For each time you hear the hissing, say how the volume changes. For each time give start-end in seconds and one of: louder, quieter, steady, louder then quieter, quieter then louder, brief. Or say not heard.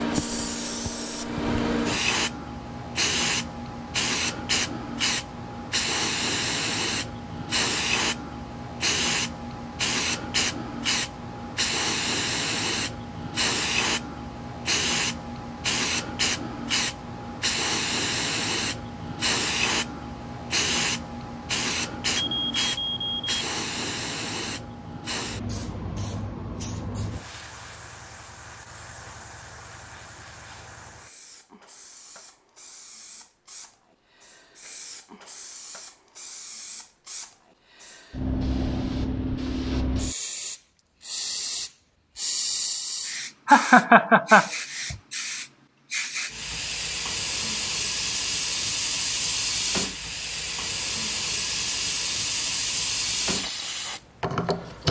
0.0-54.8 quieter then louder.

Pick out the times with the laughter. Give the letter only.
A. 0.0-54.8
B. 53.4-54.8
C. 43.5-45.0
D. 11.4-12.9
C.